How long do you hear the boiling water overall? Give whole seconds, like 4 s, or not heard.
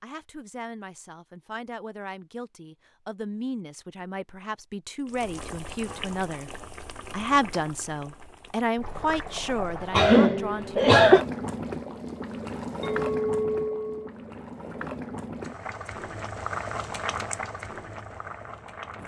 14 s.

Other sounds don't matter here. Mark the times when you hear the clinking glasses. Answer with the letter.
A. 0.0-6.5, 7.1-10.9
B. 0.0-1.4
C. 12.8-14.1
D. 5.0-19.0
C.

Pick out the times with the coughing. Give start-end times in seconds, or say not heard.
9.9-11.2.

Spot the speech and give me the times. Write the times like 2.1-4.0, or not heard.
0.0-6.5, 7.1-10.9.